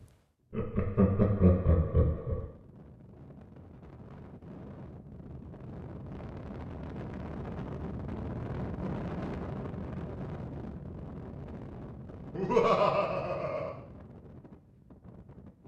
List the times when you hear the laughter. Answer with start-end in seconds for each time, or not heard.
0.5-2.5, 12.3-13.7.